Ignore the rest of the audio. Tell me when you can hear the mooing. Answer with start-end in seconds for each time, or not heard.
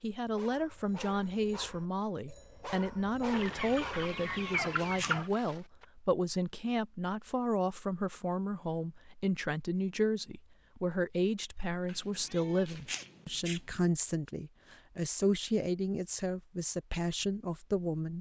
not heard.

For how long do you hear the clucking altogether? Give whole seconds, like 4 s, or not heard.
2 s.